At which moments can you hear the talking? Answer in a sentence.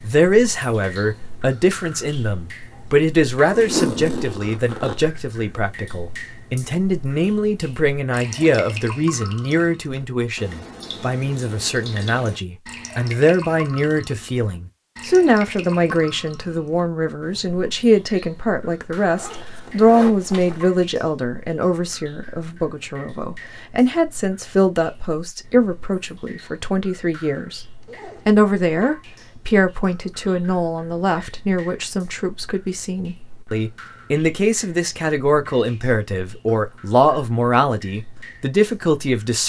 You can hear the talking from 0.0 to 27.6 s and from 28.2 to 39.4 s.